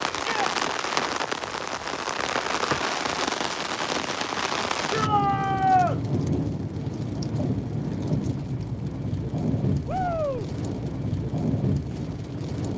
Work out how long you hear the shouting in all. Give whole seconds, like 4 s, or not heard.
2 s.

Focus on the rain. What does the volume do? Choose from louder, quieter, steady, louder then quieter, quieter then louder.
steady.